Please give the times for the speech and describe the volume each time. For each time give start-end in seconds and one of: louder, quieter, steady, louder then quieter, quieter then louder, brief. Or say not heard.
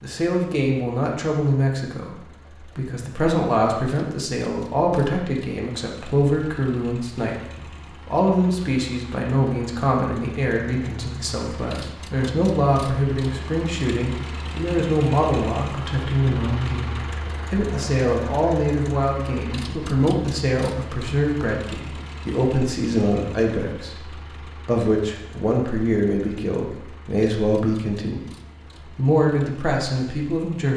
0.0-28.2 steady
28.8-30.7 brief.